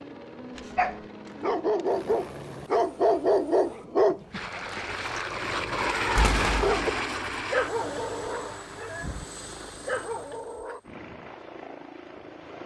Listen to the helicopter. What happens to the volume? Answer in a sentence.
The volume of the helicopter goes up, then down.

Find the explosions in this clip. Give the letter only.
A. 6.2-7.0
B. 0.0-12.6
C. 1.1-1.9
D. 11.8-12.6
A.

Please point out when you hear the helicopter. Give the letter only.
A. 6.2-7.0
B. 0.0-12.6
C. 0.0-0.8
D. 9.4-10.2
B.